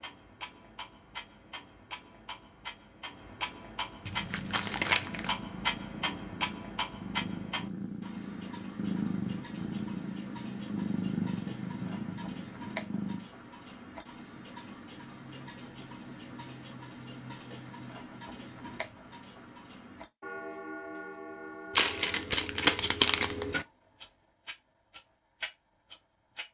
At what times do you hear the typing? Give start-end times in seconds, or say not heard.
not heard.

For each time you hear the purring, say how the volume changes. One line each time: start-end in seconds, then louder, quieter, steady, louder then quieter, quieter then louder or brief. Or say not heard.
4.0-13.3 louder.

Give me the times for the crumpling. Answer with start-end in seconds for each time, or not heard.
4.0-5.3, 21.8-23.6.